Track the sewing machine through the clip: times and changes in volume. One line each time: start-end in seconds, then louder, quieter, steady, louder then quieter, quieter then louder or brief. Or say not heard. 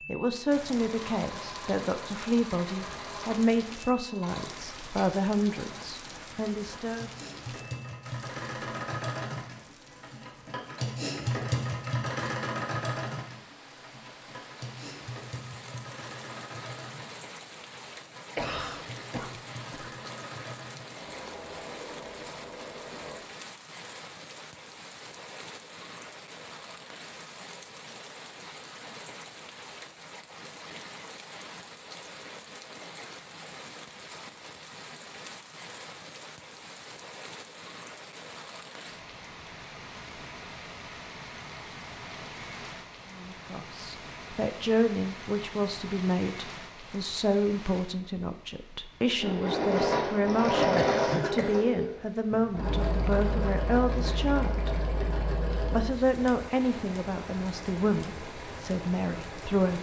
0.0-23.2 louder then quieter
49.1-59.7 quieter.